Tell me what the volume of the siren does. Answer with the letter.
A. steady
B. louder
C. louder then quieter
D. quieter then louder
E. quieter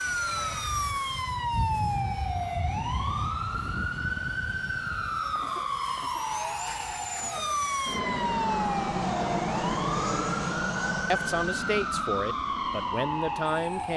A.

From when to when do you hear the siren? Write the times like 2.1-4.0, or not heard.
0.0-13.9.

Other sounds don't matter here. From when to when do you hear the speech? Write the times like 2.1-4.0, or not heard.
11.1-13.9.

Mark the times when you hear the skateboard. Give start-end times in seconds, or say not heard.
not heard.